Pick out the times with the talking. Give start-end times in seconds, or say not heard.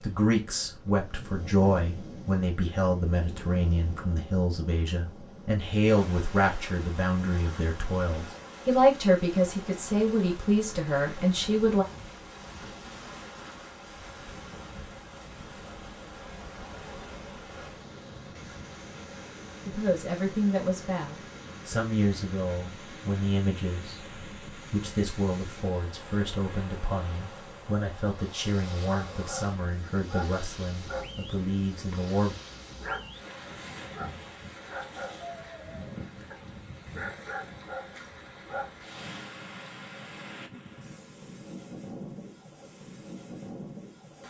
0.0-11.8, 19.6-32.4.